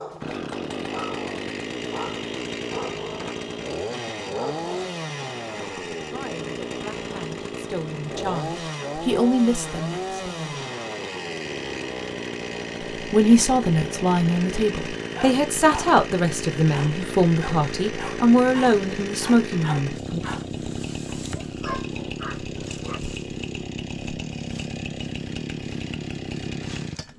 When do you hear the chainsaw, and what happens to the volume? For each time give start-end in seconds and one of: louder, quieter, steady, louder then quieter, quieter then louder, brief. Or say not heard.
0.0-27.1 steady.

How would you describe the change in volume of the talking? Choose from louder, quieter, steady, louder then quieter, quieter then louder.
louder.